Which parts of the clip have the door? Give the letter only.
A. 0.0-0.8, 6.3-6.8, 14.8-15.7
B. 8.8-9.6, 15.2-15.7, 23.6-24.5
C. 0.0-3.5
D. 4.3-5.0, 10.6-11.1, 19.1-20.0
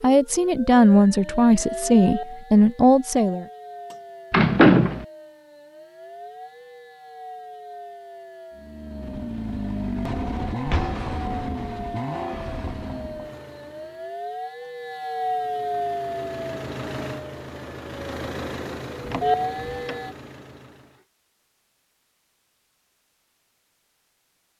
D.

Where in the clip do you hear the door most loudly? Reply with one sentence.
The volume of the door peaks at 5 seconds.